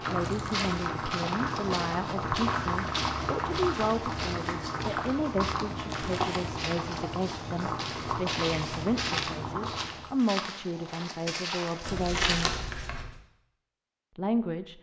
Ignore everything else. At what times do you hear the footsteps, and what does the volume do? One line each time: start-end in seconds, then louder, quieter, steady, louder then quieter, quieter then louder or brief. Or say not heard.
0.0-12.1 steady.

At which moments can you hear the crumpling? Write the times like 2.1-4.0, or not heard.
0.1-0.7, 5.8-6.5, 11.8-13.2.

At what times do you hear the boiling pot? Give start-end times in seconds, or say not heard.
0.0-10.2.